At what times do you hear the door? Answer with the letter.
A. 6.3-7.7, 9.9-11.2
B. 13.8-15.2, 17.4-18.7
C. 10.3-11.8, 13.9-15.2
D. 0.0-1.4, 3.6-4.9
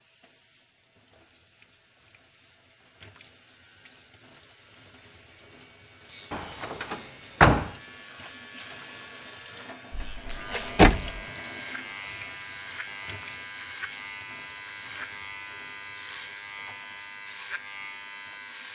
A.